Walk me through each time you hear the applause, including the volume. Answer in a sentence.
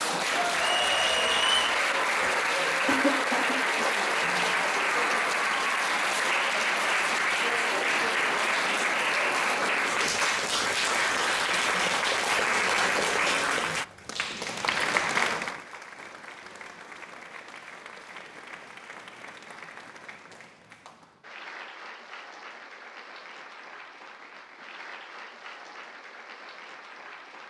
The applause can be heard from 0.0 to 27.4 s, getting quieter.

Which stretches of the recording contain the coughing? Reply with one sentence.
The coughing can be heard from 2.9 to 4.5 s.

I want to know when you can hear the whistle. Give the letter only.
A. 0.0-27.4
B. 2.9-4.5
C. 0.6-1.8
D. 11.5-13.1
C.